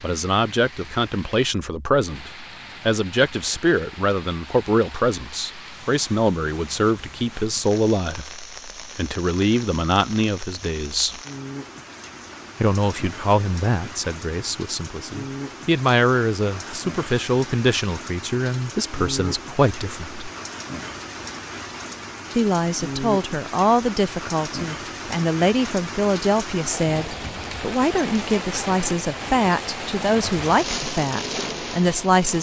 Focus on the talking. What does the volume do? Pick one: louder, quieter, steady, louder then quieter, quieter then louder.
steady.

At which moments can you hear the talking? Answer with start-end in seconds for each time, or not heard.
0.0-11.2, 12.6-20.2, 22.4-32.3.